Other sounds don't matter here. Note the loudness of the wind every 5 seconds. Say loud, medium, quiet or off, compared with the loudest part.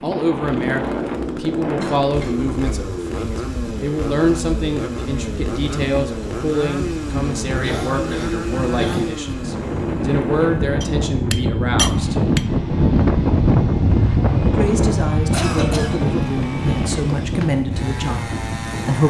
medium, medium, loud, medium.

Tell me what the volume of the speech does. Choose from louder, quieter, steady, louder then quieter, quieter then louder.
steady.